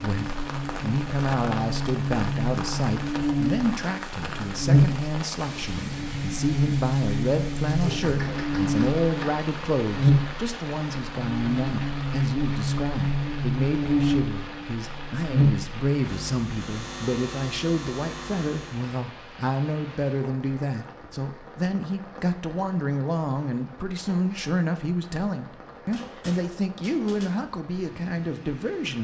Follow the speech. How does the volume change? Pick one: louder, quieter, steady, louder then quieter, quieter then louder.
steady.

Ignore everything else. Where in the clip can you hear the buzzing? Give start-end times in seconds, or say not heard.
0.1-18.9.